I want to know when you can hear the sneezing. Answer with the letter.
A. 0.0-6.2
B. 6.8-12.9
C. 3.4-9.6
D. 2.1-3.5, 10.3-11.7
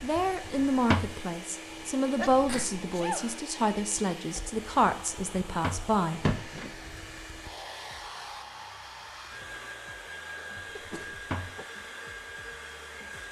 D.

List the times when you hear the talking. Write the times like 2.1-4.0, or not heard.
0.0-6.2.